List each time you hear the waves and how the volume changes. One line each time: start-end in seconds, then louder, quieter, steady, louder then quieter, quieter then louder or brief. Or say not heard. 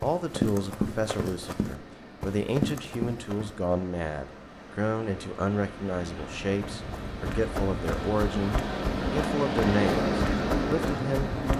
0.0-11.5 louder.